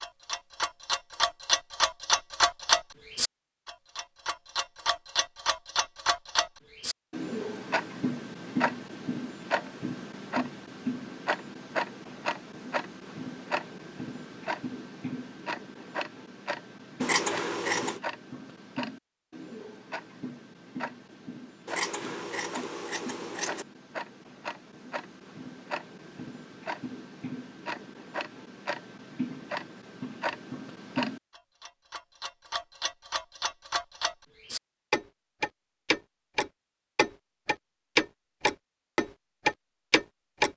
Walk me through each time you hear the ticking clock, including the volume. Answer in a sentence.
You can hear the ticking clock from 0.0 to 40.5 s, getting quieter then louder.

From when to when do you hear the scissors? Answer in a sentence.
You can hear the scissors from 17.0 to 18.0 s and from 21.6 to 23.6 s.